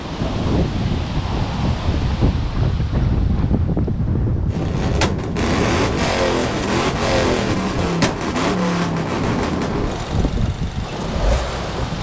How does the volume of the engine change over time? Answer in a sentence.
The loudness of the engine goes down.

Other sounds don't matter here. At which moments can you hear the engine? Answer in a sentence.
The engine can be heard from 4.5 to 11.9 s.